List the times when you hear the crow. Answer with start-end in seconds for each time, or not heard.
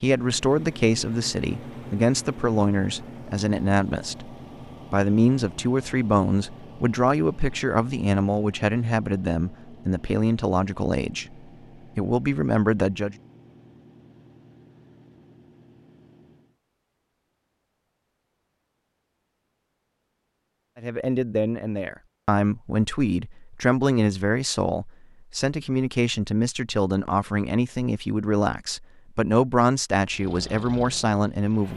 not heard.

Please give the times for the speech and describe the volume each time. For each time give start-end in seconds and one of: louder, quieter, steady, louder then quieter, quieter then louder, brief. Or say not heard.
0.0-13.2 steady
20.8-31.7 steady.